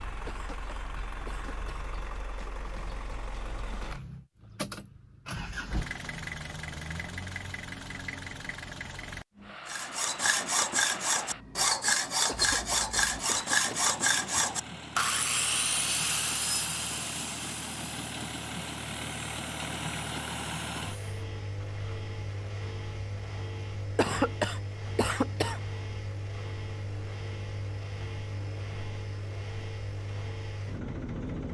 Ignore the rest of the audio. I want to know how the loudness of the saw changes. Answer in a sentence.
The loudness of the saw goes down.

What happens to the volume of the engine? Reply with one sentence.
The loudness of the engine stays about the same.